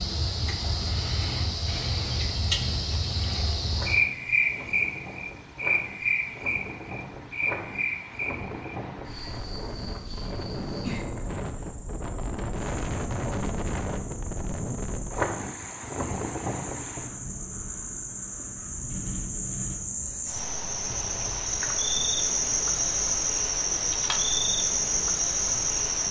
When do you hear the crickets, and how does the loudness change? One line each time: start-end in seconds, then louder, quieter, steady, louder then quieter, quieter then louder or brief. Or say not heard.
0.0-26.0 quieter then louder.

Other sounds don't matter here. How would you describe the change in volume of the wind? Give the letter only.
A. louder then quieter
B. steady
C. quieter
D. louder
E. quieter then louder
A.